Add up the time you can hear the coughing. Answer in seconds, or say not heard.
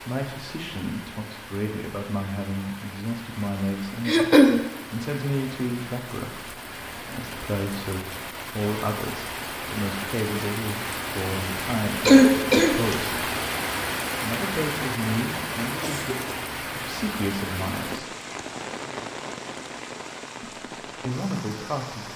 2 s.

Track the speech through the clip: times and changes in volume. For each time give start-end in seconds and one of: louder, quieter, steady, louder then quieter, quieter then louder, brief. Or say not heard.
0.0-13.3 steady
14.2-18.2 quieter then louder
20.4-22.1 brief.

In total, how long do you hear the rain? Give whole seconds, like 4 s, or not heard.
22 s.